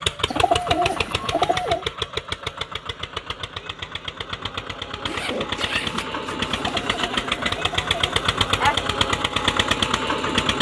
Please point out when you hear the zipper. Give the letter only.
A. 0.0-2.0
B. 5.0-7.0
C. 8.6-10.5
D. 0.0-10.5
B.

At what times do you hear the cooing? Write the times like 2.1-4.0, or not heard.
0.2-1.9, 6.8-8.9.